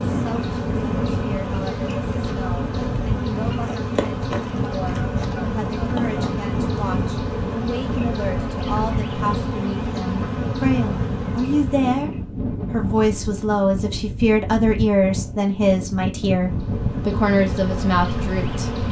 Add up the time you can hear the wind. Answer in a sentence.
You can hear the wind for 19 seconds altogether.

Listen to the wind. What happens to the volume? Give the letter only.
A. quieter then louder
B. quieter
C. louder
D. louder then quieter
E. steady
E.